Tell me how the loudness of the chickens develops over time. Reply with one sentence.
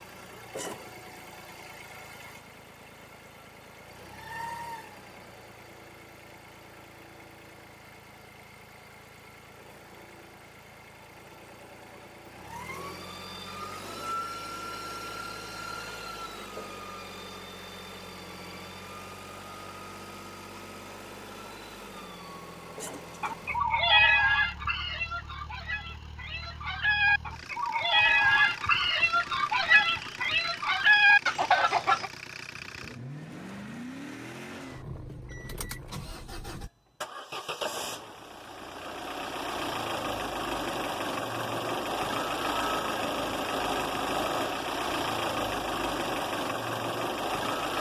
The loudness of the chickens goes down, then up.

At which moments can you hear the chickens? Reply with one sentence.
The chickens can be heard from 23.2 to 32.1 s.